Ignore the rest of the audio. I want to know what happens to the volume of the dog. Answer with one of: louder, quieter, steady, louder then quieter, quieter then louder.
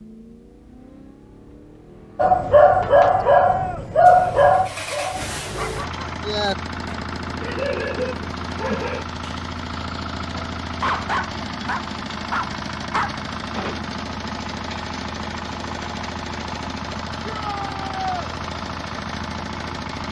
quieter.